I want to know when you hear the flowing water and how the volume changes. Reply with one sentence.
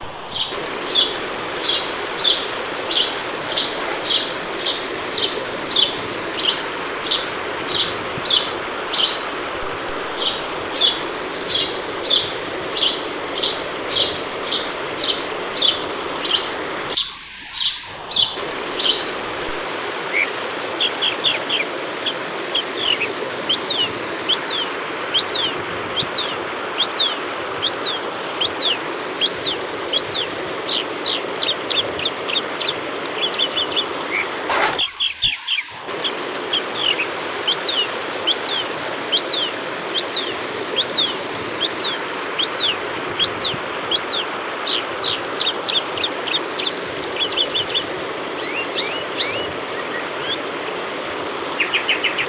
The flowing water can be heard from 0.0 to 52.2 s, at a steady volume.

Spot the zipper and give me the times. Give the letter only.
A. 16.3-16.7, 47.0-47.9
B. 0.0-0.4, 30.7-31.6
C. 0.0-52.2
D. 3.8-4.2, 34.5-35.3
D.